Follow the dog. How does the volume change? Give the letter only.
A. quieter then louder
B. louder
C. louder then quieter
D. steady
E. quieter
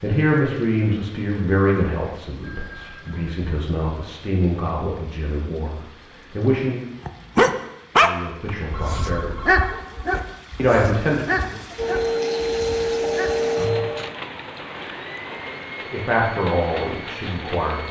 E.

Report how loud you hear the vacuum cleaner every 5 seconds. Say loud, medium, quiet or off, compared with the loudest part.
off, off, loud, quiet.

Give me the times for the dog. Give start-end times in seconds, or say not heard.
7.0-13.3.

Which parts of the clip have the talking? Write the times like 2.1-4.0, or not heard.
0.0-6.9, 8.0-9.4, 10.6-11.6, 15.9-17.8.